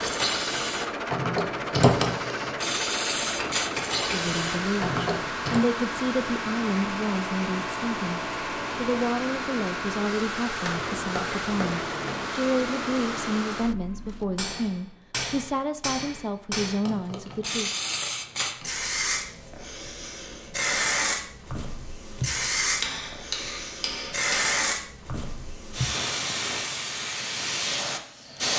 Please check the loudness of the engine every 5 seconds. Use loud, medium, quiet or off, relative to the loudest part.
loud, loud, loud, off, off, off.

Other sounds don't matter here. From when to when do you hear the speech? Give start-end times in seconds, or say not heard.
4.1-17.7.